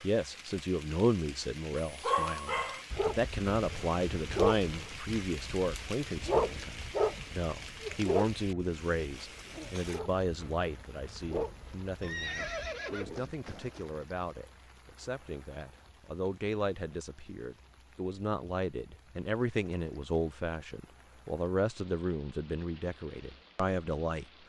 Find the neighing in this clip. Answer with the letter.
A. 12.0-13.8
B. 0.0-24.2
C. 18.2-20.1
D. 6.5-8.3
A.